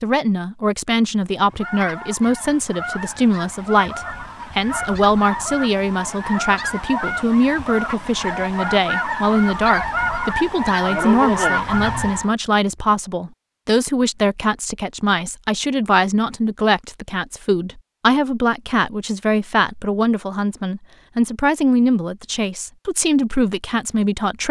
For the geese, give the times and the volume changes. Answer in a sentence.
You can hear the geese from 1.4 to 12.3 s, getting louder.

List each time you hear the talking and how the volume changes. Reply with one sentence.
The talking can be heard from 0.0 to 24.4 s, at a steady volume.